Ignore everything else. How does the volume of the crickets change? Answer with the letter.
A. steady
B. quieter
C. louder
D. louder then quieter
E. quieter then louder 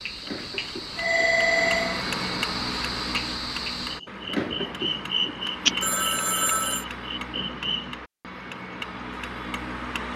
D.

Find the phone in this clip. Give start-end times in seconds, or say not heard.
0.9-2.0, 5.8-6.8.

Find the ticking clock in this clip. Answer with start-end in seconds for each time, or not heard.
0.0-10.1.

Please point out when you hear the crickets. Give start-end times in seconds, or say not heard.
0.0-8.0.